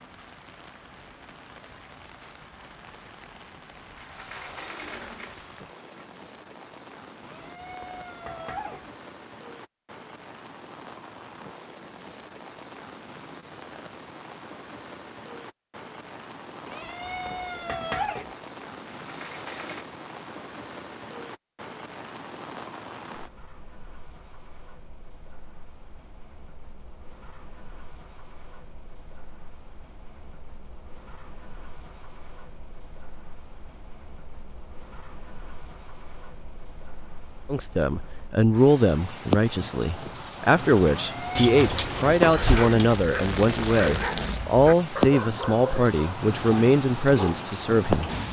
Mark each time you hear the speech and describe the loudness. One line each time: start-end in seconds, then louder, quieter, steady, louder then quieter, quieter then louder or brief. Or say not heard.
37.5-48.1 steady.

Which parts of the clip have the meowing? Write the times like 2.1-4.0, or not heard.
7.2-8.8, 16.6-18.3, 40.9-41.5.